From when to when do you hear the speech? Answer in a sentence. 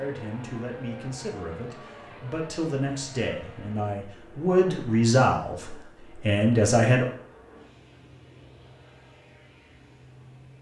The speech can be heard from 0.0 to 7.0 s.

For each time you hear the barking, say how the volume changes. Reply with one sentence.
The barking can't be heard in this clip.